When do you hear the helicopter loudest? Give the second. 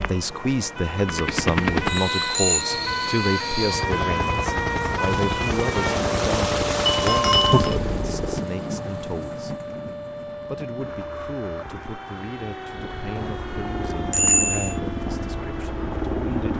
2 s.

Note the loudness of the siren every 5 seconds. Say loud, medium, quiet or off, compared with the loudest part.
loud, loud, medium, medium.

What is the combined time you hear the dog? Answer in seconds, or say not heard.
not heard.